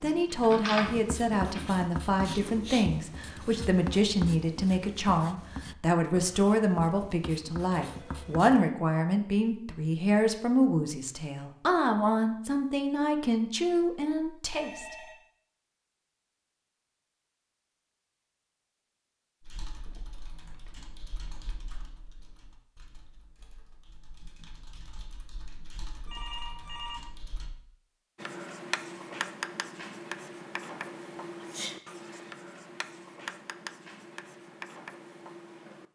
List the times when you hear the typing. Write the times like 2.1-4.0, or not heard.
0.0-1.7, 19.4-27.5.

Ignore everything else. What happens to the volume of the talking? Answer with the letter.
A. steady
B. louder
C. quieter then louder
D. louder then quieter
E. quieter
A.